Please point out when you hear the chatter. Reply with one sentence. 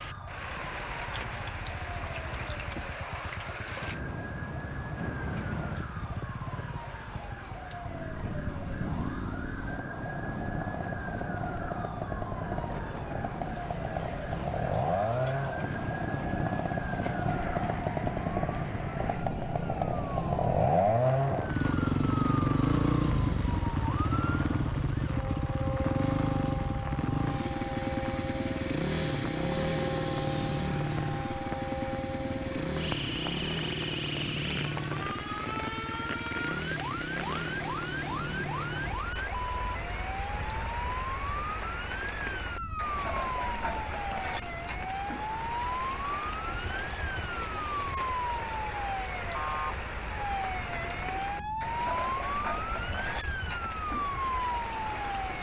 The chatter can't be heard in this clip.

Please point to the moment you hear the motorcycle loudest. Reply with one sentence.
The volume of the motorcycle peaks at 21 seconds.